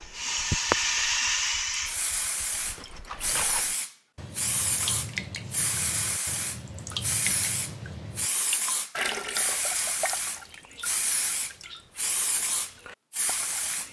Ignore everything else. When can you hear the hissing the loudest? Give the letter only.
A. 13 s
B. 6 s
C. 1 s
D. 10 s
C.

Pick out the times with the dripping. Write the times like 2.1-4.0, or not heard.
0.0-13.8.